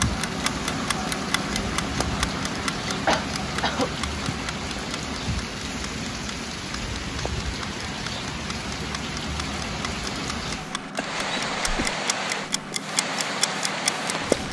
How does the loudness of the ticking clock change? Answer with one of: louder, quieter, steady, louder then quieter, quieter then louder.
quieter then louder.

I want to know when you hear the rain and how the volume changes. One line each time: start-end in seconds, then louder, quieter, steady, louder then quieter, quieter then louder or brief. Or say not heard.
0.0-14.4 steady.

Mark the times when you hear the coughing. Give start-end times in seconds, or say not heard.
3.0-4.3, 10.9-11.9.